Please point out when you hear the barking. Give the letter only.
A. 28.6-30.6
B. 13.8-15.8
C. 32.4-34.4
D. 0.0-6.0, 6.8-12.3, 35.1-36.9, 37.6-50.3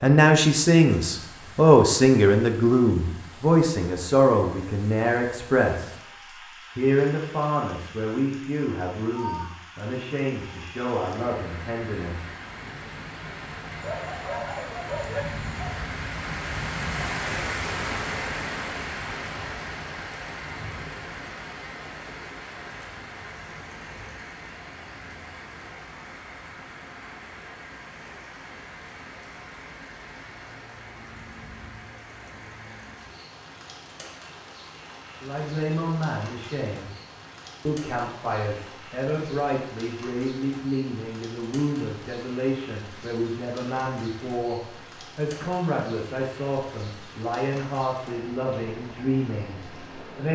B.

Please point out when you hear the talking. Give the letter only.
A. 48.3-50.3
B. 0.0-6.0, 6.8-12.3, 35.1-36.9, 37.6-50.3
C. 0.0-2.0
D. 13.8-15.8
B.